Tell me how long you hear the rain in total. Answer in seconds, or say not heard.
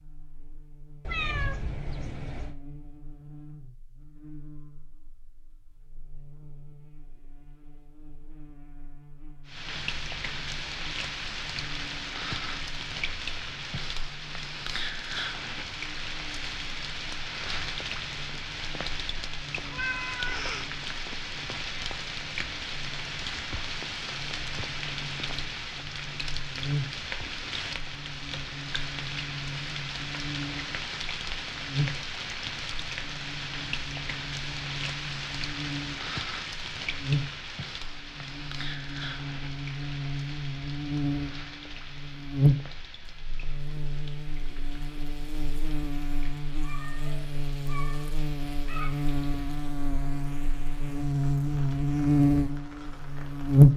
44 s.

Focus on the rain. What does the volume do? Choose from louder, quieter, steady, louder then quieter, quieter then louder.
quieter.